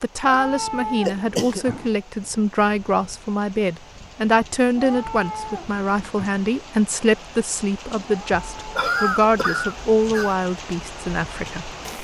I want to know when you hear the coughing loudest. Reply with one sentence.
The volume of the coughing peaks at 9 seconds.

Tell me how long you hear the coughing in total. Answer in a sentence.
The coughing can be heard for 3 seconds in total.